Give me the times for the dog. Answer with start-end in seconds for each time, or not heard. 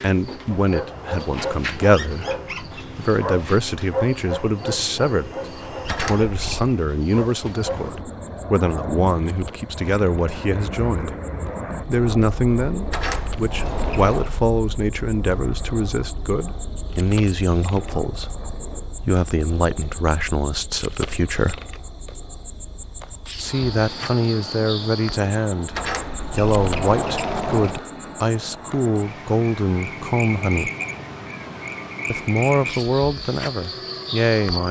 0.5-7.8.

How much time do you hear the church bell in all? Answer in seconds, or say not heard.
not heard.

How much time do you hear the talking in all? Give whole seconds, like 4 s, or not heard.
31 s.